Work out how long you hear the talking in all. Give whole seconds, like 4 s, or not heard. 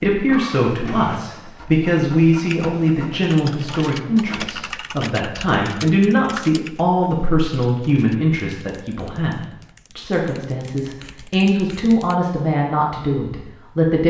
14 s.